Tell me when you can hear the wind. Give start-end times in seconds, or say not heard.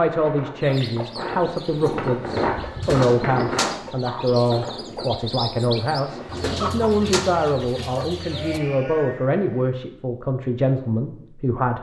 0.0-7.2.